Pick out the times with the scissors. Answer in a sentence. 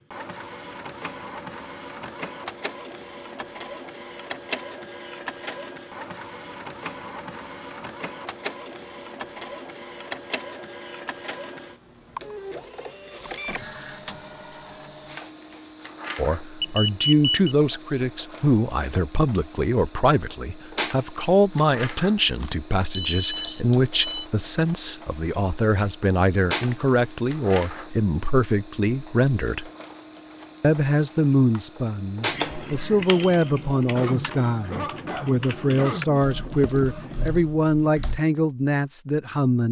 The scissors can't be heard in this clip.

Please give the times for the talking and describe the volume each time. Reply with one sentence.
You can hear the talking from 16.1 to 29.7 s, at a steady volume; and from 30.6 to 39.6 s, at a steady volume.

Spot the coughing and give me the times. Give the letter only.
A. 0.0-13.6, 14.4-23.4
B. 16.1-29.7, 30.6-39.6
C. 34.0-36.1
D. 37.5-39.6
C.